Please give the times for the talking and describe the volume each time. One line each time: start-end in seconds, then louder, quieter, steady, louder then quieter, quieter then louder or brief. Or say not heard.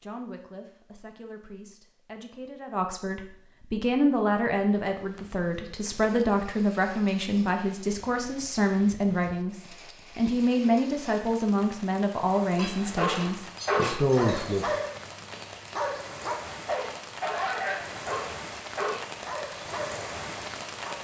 0.0-14.7 louder.